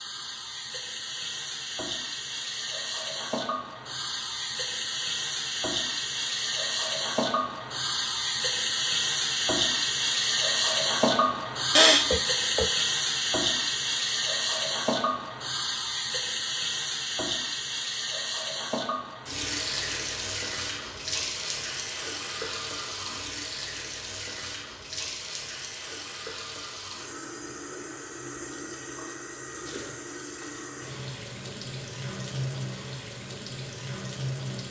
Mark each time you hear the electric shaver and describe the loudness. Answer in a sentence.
The electric shaver can't be heard in this clip.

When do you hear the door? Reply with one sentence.
The door can't be heard in this clip.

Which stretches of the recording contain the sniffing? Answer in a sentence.
The sniffing can be heard from 11.8 to 12.8 s.